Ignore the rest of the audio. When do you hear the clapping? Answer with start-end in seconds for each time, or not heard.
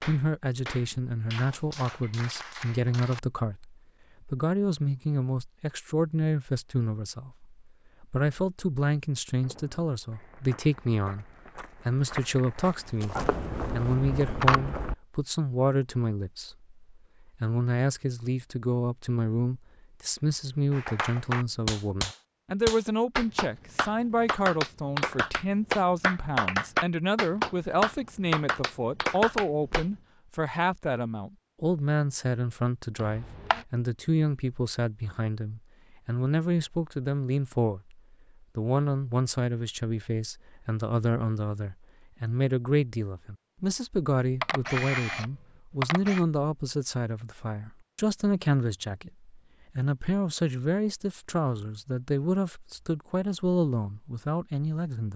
0.0-3.2, 20.7-29.9.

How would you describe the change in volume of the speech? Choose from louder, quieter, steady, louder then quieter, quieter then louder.
steady.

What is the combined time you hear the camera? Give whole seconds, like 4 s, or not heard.
4 s.